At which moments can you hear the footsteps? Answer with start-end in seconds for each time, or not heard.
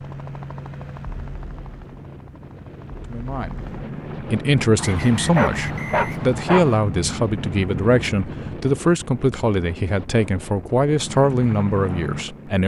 not heard.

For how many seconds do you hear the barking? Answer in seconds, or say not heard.
2 s.